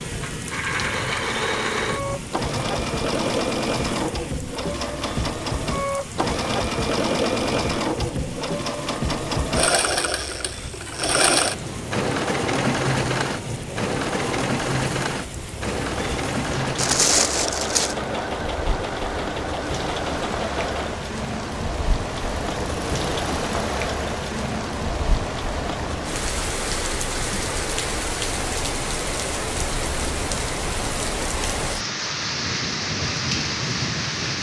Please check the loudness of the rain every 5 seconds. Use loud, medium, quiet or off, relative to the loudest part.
medium, medium, medium, medium, loud, loud, loud.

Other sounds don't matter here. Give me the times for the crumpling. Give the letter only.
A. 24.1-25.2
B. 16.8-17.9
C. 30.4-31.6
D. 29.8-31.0
B.